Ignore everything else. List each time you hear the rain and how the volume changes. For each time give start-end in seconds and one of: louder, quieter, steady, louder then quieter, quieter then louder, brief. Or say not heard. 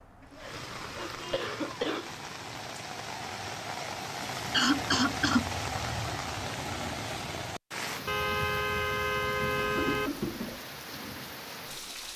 0.0-12.1 louder then quieter.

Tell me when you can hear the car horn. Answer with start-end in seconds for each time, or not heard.
1.0-1.4, 8.1-10.1.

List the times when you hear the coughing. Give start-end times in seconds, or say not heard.
0.4-2.2, 4.5-5.9, 9.6-10.6.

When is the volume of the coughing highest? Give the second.
5 s.